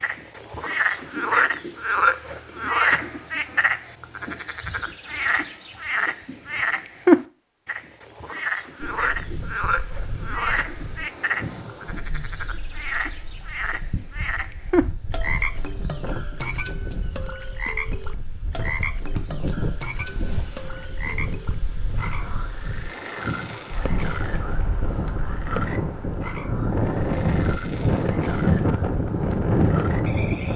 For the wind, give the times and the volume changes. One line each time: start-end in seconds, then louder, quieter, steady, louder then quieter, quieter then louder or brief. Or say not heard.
8.8-30.5 louder.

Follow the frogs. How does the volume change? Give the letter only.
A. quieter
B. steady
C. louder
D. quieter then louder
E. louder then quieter
A.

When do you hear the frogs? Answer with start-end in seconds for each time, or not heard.
0.0-30.5.